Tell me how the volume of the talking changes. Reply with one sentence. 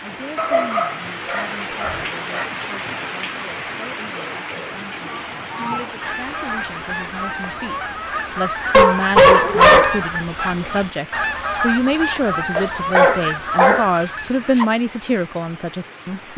The volume of the talking goes up.